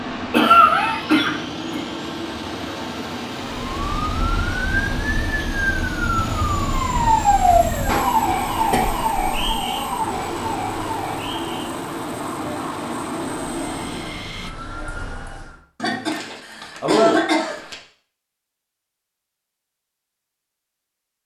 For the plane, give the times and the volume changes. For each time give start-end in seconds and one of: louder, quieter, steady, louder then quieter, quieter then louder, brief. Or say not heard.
0.0-14.5 steady.